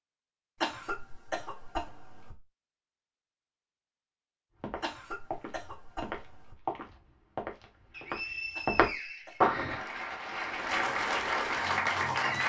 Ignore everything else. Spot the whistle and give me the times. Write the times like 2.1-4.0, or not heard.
7.9-9.9.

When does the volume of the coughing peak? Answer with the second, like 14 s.
1 s.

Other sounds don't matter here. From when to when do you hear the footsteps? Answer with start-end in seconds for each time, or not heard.
4.5-9.8.